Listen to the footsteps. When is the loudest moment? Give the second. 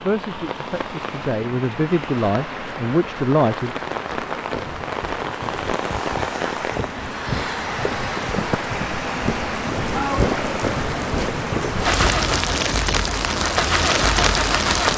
10 s.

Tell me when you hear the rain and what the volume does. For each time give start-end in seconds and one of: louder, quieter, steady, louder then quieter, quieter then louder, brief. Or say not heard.
0.0-14.9 louder.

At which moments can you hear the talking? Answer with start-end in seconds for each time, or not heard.
0.0-3.7.